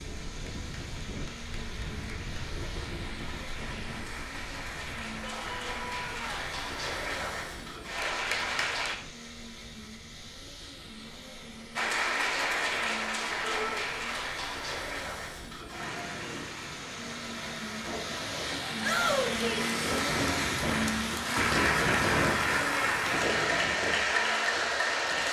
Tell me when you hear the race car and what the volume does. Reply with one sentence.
The race car can be heard from 0.0 to 25.2 s, getting louder.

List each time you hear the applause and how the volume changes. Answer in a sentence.
The applause can be heard from 0.0 to 8.9 s, getting louder; and from 11.8 to 25.2 s, getting quieter then louder.